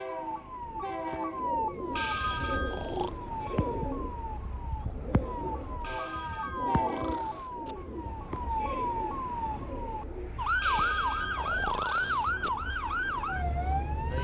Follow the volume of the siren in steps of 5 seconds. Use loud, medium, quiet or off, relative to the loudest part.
medium, medium, loud.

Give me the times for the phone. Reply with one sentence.
The phone can be heard from 1.9 to 3.1 s, from 5.8 to 7.8 s and from 10.6 to 12.5 s.